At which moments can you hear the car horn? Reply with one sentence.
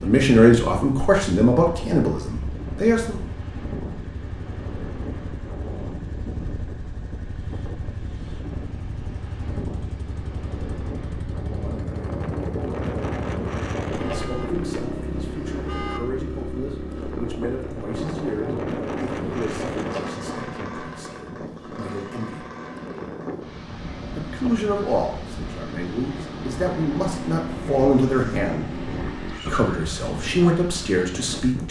You can hear the car horn from 13.9 to 16.0 s.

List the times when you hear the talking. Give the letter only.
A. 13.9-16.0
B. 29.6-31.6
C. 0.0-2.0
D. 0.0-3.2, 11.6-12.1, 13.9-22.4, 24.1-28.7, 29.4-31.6
D.